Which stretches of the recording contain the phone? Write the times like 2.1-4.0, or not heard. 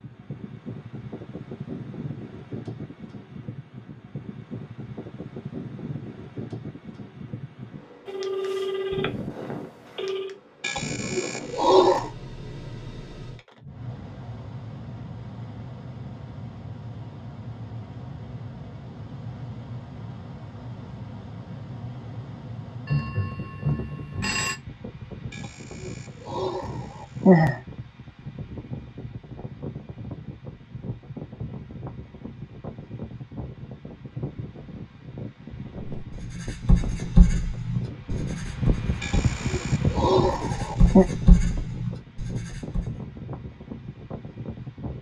8.1-10.3, 22.9-24.6.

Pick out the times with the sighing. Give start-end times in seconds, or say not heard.
10.6-12.1, 25.3-27.6, 39.0-41.0.